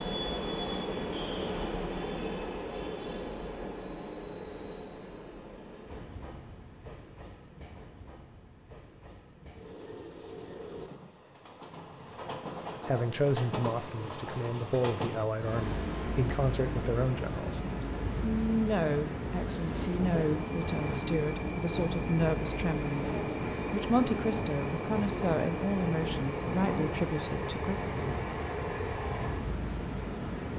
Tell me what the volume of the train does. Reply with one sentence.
The volume of the train goes down, then up.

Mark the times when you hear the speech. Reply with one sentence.
The speech can be heard from 12.8 to 17.6 s, from 18.2 to 23.1 s and from 23.7 to 27.8 s.